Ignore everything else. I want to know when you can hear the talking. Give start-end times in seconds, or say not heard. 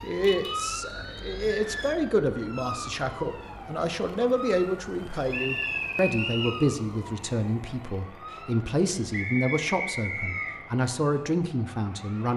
0.0-12.3.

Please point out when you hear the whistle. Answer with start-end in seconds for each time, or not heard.
0.8-1.9, 5.3-6.6, 9.1-10.5.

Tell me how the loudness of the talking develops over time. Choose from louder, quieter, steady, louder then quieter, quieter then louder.
steady.